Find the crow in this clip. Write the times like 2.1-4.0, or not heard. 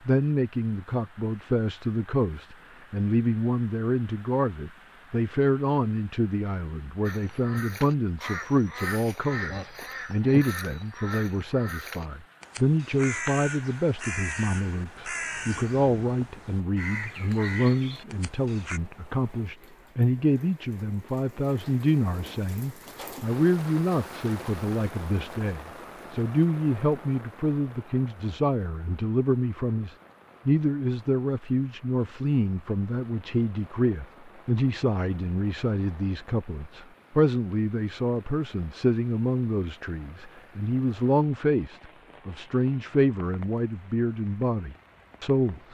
7.0-18.8.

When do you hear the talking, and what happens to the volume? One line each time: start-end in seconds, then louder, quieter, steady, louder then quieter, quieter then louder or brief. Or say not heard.
0.1-45.6 steady.